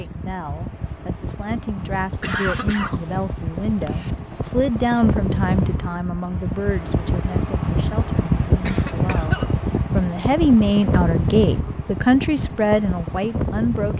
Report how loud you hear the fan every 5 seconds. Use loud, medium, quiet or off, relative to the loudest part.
medium, loud, loud.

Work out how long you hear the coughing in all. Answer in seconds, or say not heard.
3 s.